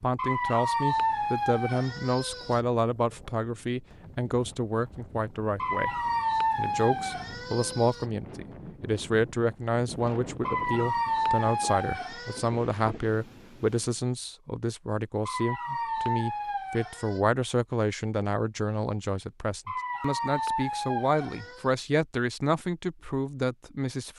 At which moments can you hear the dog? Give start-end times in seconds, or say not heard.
0.1-2.6, 5.5-8.1, 10.4-12.4, 15.2-17.2, 19.6-21.7.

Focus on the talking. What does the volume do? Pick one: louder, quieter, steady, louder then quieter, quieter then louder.
steady.